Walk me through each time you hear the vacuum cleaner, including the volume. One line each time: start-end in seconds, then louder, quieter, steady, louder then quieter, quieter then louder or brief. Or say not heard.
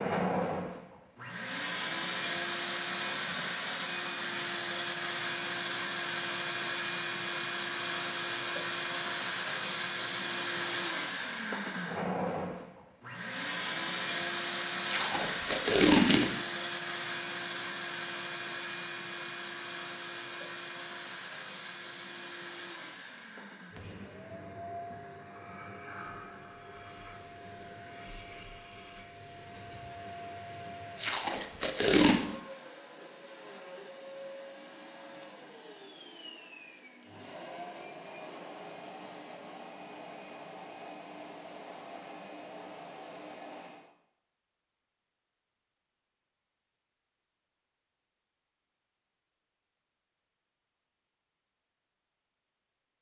0.0-43.9 quieter.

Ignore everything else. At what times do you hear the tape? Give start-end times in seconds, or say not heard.
14.8-16.3, 30.9-32.2.